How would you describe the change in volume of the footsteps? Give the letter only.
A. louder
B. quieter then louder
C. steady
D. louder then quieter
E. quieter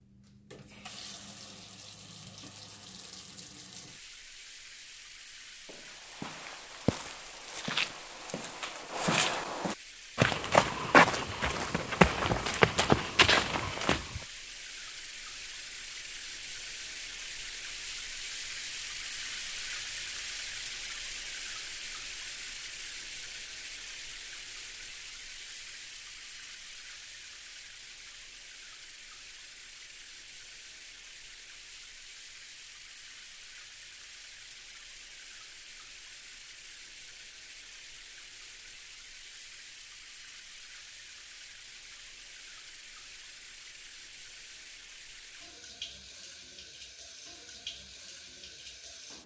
A.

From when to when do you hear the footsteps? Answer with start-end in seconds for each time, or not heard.
5.7-14.2.